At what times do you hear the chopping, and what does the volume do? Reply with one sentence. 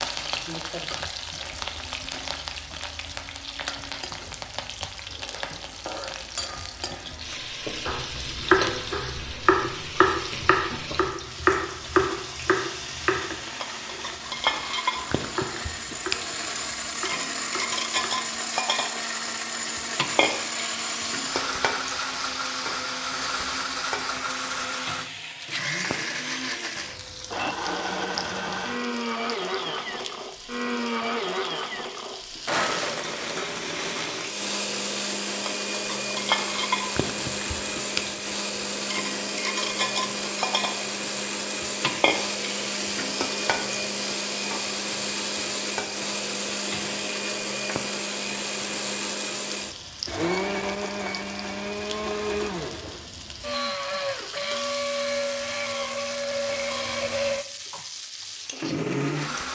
You can hear the chopping from 7.8 to 18.3 s, getting quieter.